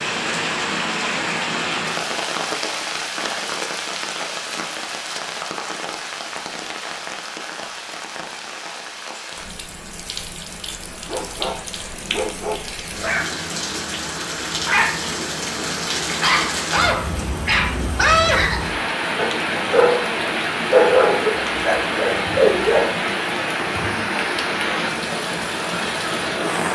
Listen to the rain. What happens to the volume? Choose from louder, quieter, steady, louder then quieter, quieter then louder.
quieter then louder.